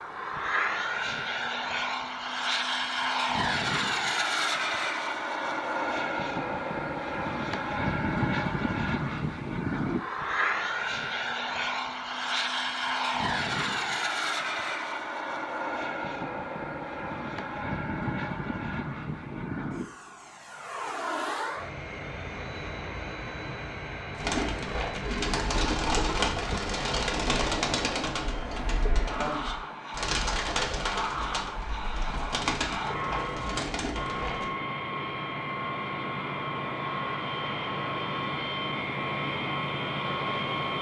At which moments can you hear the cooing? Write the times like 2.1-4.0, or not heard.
24.1-34.5.